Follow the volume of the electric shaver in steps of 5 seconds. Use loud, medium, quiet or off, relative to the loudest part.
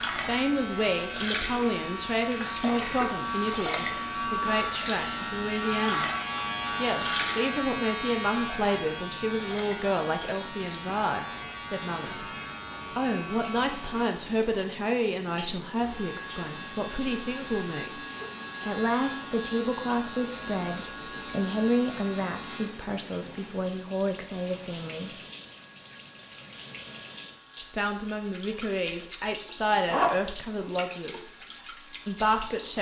loud, loud, medium, medium, medium, quiet, quiet.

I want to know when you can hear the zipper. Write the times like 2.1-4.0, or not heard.
29.9-30.8.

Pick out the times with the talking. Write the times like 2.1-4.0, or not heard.
0.1-6.1, 6.8-12.2, 12.9-17.9, 18.6-25.1, 27.6-31.3, 32.0-32.7.